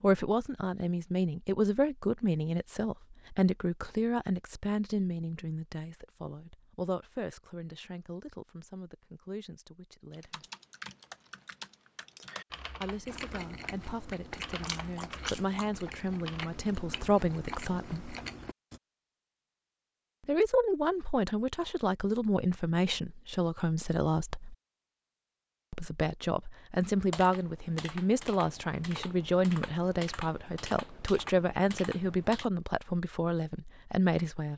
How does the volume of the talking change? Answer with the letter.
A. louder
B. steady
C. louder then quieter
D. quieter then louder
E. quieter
D.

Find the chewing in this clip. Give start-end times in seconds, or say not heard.
13.1-18.8.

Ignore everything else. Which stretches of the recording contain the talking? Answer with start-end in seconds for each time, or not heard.
0.0-10.4, 12.7-18.1, 20.2-24.6, 25.7-34.5.